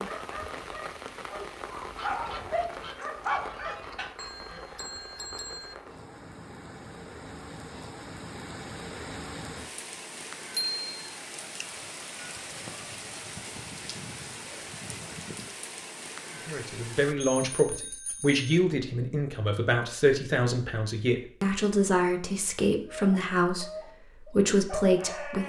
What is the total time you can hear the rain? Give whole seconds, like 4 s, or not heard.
17 s.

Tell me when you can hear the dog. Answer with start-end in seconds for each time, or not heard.
0.0-4.0, 22.9-25.4.